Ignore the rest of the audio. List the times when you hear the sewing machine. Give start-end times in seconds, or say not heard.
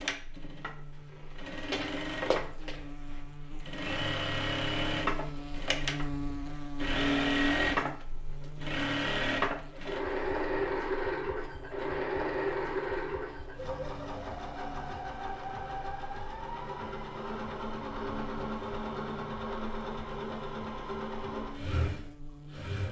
0.0-22.8.